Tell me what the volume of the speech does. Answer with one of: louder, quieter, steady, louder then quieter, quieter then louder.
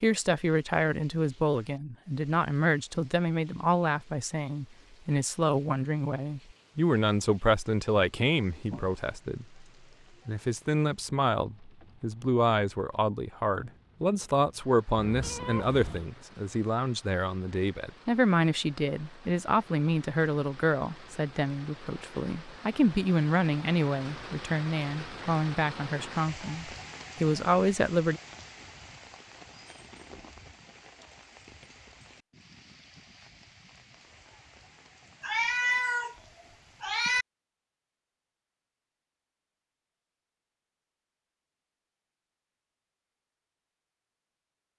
steady.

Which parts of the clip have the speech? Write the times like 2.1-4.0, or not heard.
0.0-9.7, 10.2-28.2.